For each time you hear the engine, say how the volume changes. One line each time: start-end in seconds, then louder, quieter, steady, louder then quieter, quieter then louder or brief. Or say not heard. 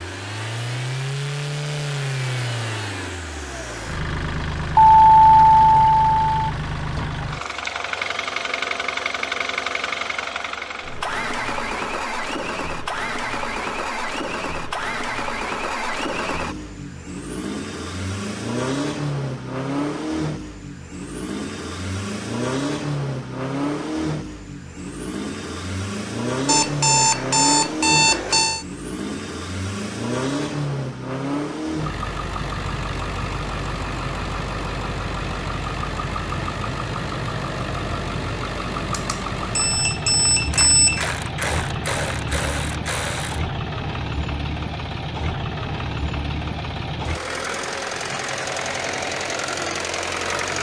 0.0-50.5 steady.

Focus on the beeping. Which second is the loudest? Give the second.
5 s.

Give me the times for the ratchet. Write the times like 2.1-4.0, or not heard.
40.5-43.5.